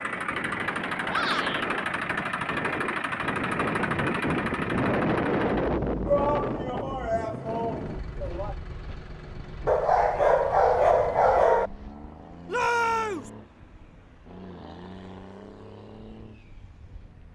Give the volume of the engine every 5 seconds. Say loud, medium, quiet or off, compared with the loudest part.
loud, medium, quiet, quiet.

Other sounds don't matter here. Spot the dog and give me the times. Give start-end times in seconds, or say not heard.
9.7-11.7.